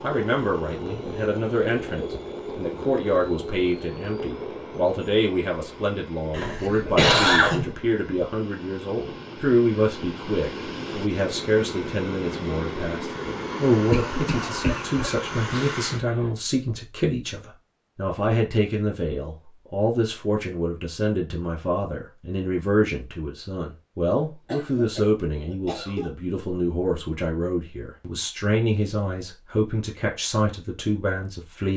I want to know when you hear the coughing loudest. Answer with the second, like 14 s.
7 s.